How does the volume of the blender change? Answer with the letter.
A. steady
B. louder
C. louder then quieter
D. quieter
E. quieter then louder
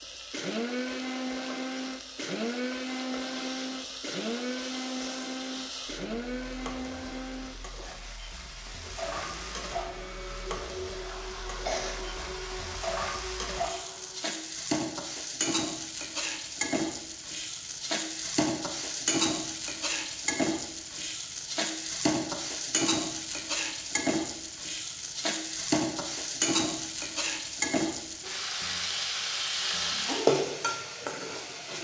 D.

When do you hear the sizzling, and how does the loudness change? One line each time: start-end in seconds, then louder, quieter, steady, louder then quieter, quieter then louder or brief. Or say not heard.
0.0-31.7 louder.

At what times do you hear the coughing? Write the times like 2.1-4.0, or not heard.
11.5-12.2.